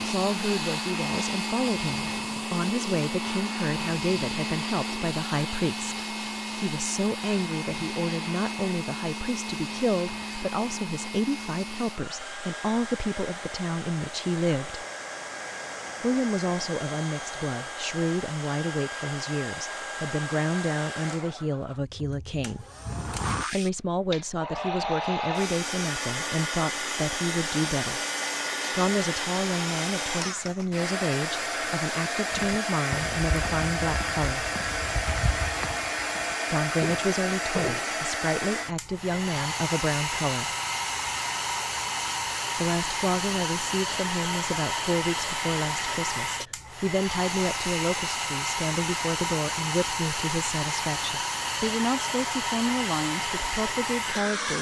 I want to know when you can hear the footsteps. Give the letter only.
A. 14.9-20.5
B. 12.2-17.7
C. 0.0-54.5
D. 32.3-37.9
D.